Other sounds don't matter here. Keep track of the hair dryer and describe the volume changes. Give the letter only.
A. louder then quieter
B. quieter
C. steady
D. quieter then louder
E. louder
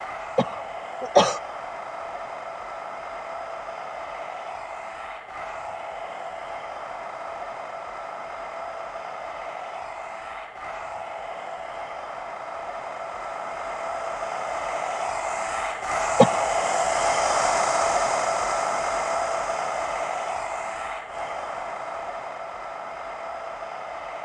A.